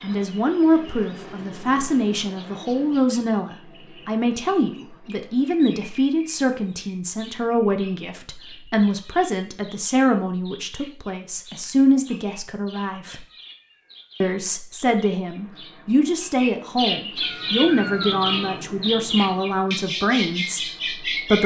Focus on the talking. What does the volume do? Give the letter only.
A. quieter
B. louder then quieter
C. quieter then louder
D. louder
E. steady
E.